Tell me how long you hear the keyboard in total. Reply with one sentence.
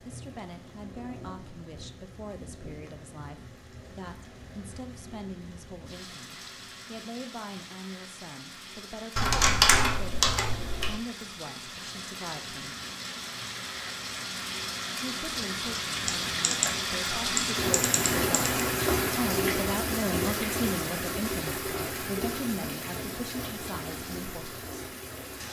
The keyboard can be heard for 4 seconds in total.